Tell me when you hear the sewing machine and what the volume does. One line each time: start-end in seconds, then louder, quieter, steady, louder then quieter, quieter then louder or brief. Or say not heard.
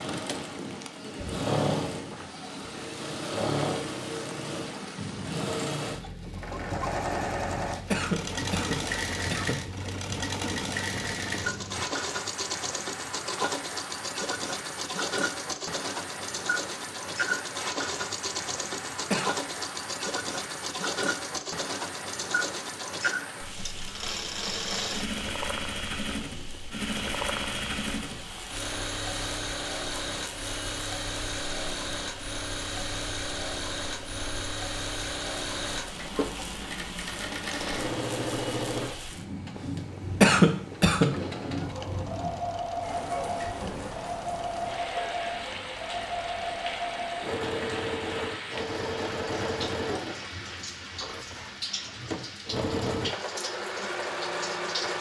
0.0-54.9 steady.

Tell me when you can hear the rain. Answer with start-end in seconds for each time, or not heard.
0.0-54.9.